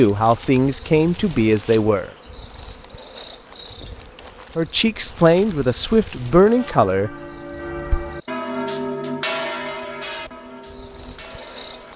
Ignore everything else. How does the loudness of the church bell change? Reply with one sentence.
The volume of the church bell goes up, then down.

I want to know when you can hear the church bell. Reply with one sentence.
You can hear the church bell from 6.3 to 11.9 s.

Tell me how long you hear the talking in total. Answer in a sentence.
The talking can be heard for 5 seconds in total.